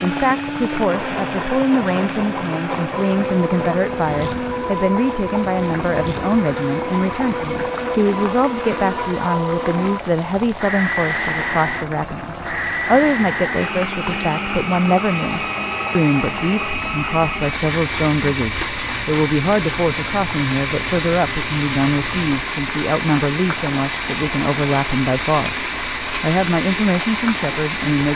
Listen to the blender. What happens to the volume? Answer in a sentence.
The volume of the blender stays about the same.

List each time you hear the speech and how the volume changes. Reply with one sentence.
You can hear the speech from 0.0 to 28.1 s, at a steady volume.